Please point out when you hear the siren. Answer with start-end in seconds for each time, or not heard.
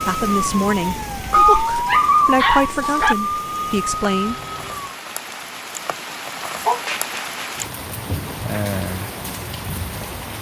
0.0-5.0.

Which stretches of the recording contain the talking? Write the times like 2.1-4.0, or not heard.
0.1-4.4.